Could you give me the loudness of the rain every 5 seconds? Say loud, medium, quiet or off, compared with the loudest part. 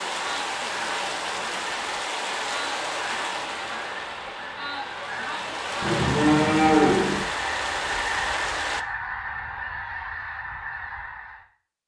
loud, loud, off.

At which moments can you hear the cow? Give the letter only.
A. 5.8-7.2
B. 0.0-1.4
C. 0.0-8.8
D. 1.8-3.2
A.